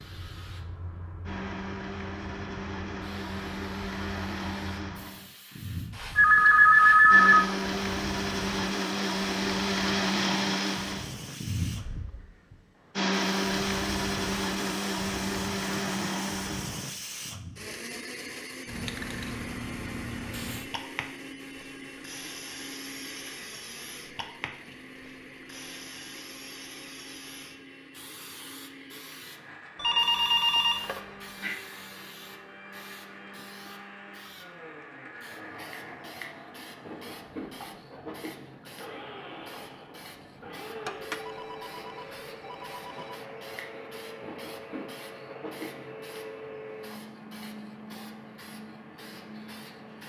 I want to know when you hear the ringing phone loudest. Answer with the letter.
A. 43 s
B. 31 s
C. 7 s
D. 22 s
C.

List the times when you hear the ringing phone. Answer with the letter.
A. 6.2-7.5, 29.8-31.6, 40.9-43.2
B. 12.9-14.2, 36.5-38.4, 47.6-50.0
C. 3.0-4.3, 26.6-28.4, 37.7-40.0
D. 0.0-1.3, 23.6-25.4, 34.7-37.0
A.